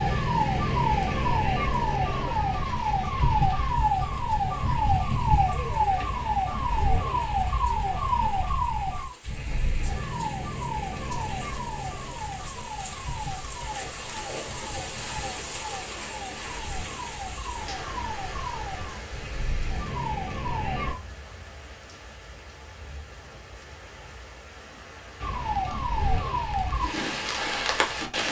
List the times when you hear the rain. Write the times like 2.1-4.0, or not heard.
0.0-28.2.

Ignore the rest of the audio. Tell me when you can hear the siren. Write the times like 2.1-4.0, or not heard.
0.0-20.9, 25.2-28.2.